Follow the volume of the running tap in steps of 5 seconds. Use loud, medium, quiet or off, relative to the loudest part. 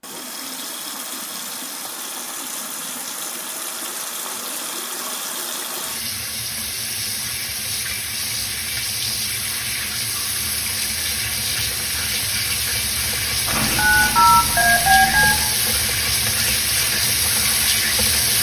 medium, medium, loud, loud.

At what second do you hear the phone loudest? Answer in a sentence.
The volume of the phone peaks at 14 seconds.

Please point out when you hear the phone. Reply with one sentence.
You can hear the phone from 13.4 to 15.4 s.